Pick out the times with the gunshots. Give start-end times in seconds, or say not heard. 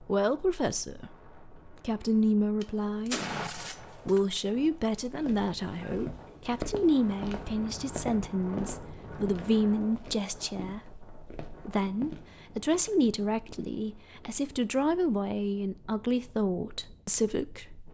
2.6-4.2.